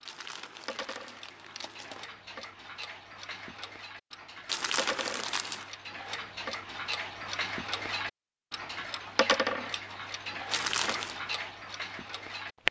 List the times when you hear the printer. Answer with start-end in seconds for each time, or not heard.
not heard.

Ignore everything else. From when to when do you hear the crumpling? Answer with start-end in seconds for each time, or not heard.
0.1-2.0, 4.5-5.7, 10.5-11.2.